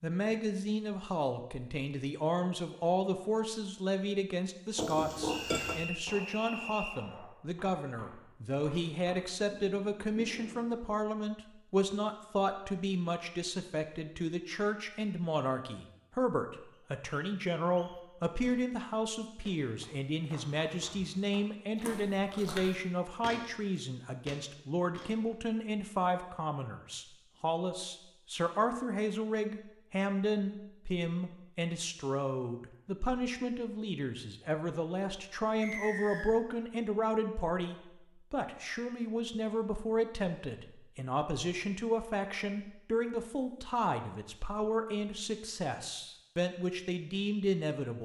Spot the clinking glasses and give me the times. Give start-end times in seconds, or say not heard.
4.8-5.9.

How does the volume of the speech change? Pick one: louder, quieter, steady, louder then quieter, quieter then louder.
steady.